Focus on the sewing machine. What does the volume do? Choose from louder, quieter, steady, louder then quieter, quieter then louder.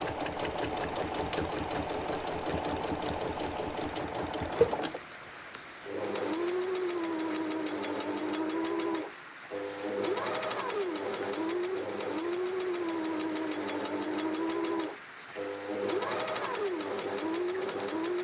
steady.